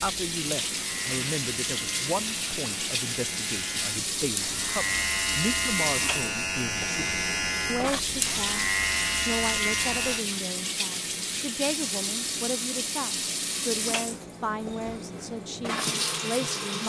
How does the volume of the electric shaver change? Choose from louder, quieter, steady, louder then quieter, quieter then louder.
louder.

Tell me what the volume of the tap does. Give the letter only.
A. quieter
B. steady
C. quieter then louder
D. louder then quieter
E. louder
B.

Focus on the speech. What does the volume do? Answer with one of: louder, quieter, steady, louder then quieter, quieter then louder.
steady.